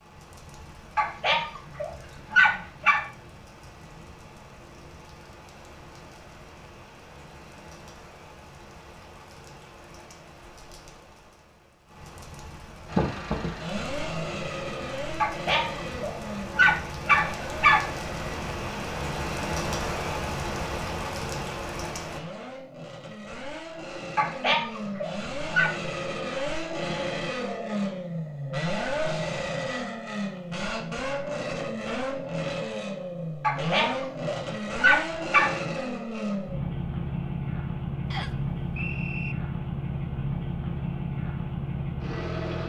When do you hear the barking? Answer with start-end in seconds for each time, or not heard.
0.9-3.0, 15.2-17.9, 24.1-25.7, 33.4-35.5.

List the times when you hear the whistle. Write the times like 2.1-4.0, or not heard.
38.1-39.4.